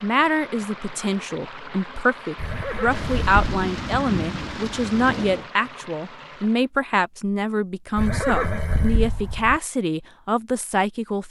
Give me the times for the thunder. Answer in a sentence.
You can hear the thunder from 2.9 to 5.5 s.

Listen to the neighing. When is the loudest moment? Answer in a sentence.
The loudest moment of the neighing is at 8 seconds.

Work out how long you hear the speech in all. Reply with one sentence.
The speech can be heard for 11 seconds in total.